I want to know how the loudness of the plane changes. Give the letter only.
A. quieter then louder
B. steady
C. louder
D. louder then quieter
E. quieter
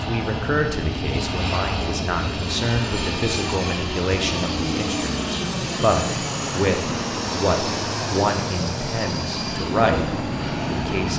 B.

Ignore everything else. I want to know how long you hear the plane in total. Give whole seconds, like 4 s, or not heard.
11 s.